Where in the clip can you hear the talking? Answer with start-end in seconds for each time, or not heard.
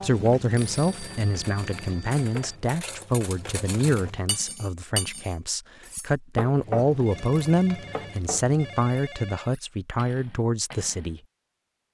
0.0-11.2.